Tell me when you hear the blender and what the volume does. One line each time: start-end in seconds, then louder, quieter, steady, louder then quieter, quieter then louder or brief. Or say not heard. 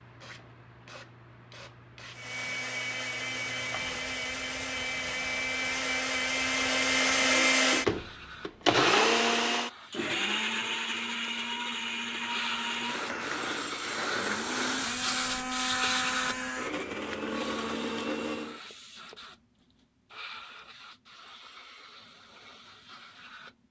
2.1-18.6 louder then quieter.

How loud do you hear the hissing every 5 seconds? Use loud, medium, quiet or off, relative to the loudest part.
quiet, quiet, loud, loud, quiet.